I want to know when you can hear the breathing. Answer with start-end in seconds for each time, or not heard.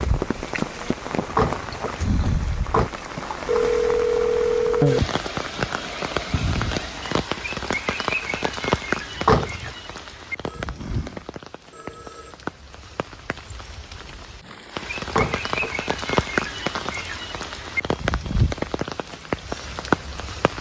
not heard.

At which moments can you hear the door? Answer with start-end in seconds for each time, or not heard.
1.2-2.9, 9.2-9.7, 15.1-15.9.